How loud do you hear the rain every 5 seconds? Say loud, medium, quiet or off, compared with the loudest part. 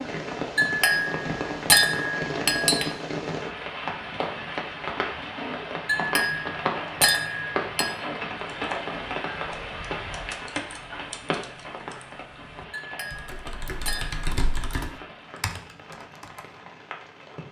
loud, loud, medium, quiet.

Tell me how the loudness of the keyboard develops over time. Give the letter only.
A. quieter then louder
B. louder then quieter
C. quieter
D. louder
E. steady
A.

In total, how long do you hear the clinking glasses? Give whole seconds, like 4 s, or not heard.
6 s.